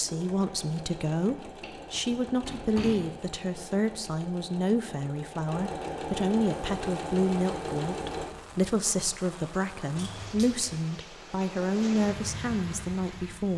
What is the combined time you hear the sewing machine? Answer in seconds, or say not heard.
8 s.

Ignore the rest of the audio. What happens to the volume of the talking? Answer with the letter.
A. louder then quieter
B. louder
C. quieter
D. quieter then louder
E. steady
E.